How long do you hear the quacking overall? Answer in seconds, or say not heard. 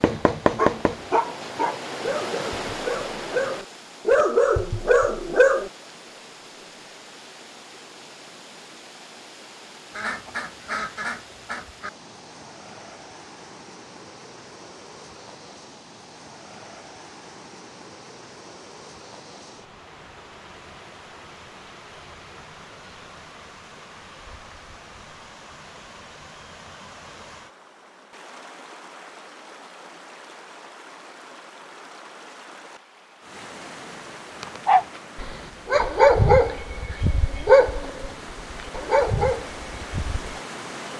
2 s.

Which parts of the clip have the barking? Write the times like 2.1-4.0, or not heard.
0.0-5.7, 34.4-40.4.